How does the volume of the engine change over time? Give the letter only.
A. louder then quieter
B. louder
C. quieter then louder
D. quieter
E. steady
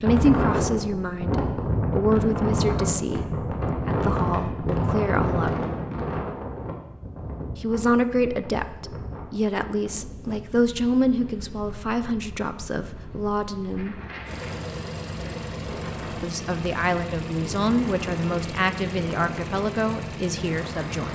E.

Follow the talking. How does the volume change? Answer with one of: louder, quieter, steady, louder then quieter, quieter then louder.
steady.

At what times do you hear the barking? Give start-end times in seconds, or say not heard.
not heard.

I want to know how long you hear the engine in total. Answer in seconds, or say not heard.
7 s.